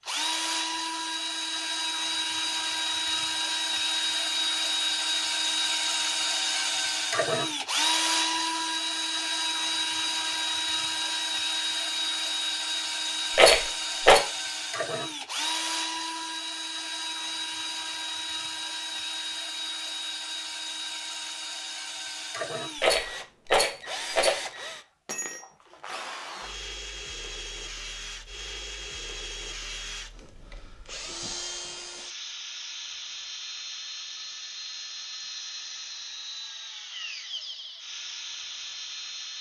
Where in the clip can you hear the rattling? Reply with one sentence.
The rattling can be heard from 13.3 to 14.2 s and from 22.8 to 24.4 s.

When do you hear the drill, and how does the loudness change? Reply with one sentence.
You can hear the drill from 0.0 to 39.3 s, getting quieter.